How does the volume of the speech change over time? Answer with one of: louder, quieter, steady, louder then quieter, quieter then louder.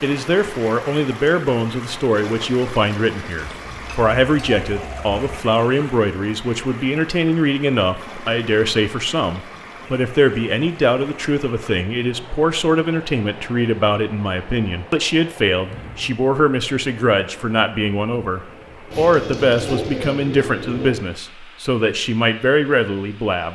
steady.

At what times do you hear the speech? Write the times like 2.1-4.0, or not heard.
0.0-23.5.